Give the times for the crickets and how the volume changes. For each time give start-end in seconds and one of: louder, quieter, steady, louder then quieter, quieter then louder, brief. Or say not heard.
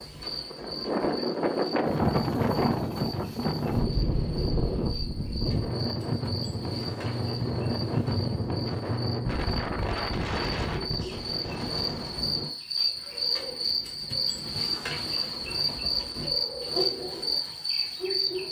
0.0-18.4 louder.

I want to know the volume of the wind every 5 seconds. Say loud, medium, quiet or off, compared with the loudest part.
loud, loud, medium, off.